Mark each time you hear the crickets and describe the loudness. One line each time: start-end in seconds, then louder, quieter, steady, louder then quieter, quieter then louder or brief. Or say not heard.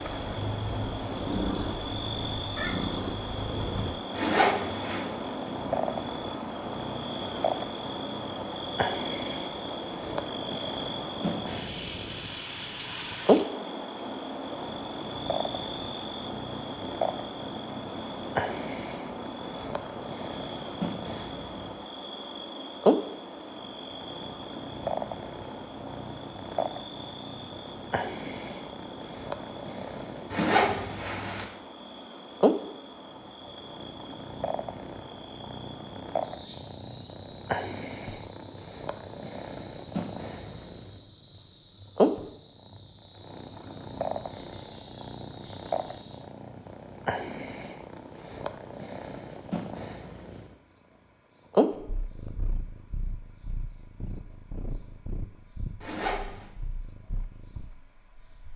0.0-58.5 quieter.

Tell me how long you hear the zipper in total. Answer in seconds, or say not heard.
3 s.